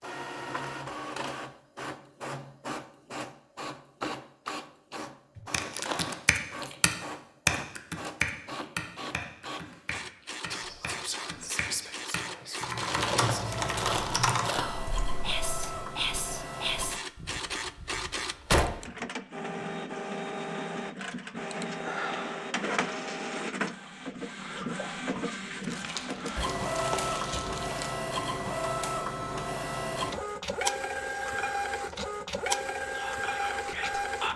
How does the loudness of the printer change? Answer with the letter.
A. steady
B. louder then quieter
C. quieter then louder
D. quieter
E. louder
E.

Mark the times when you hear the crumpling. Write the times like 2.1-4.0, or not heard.
5.5-6.2, 12.8-14.7, 25.6-27.9.